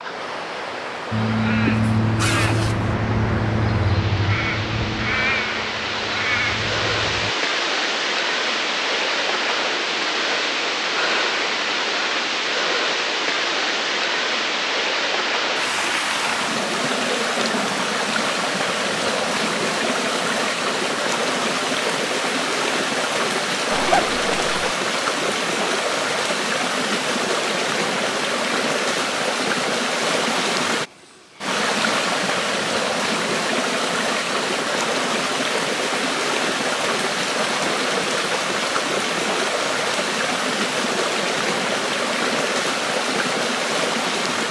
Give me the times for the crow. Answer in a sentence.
The crow can be heard from 1.1 to 7.3 s.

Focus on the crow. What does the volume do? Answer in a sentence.
The volume of the crow goes down.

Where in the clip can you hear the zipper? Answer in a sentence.
The zipper can be heard from 1.6 to 2.9 s and from 23.7 to 24.7 s.